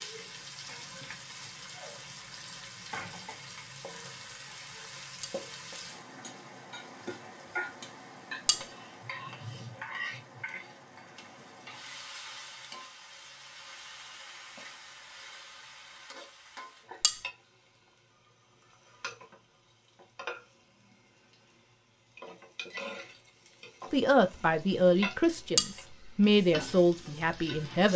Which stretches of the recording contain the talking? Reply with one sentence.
The talking can be heard from 23.9 to 27.9 s.